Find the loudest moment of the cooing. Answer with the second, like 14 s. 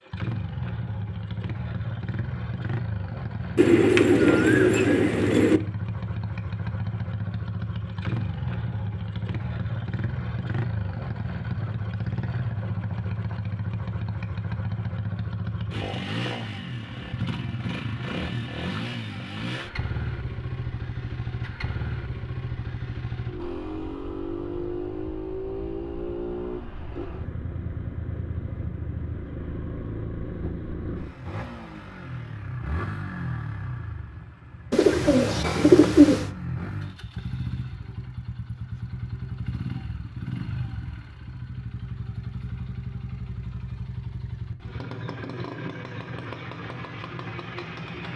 36 s.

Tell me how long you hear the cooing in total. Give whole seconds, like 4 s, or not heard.
4 s.